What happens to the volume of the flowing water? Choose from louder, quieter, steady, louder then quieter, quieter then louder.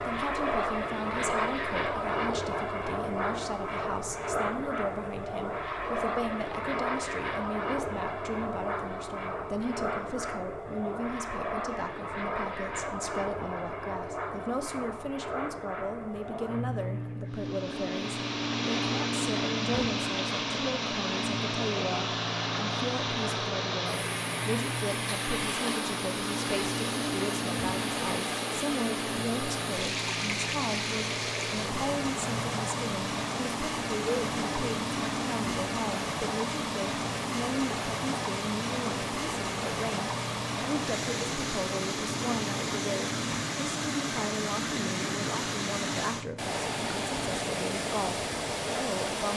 steady.